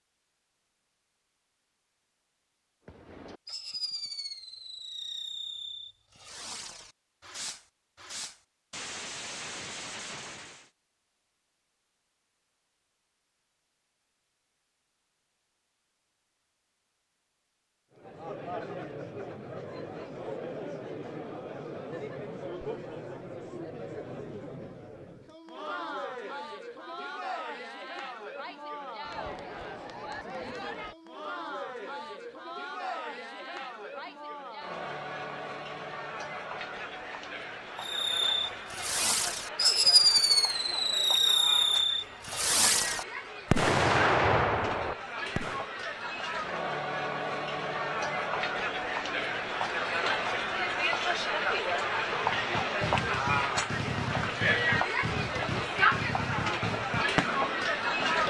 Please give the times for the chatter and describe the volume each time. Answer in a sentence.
The chatter can be heard from 17.9 to 58.2 s, getting louder.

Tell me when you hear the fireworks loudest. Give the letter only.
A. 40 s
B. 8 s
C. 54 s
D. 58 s
A.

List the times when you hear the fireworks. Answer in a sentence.
The fireworks can be heard from 2.9 to 10.7 s, from 37.8 to 45.6 s and from 52.2 to 58.2 s.